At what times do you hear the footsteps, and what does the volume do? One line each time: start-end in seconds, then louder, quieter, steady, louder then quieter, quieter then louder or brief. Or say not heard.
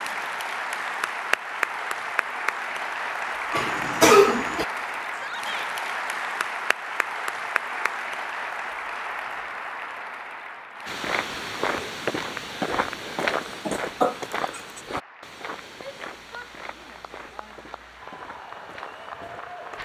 10.8-19.8 quieter.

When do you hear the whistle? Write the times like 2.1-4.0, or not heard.
not heard.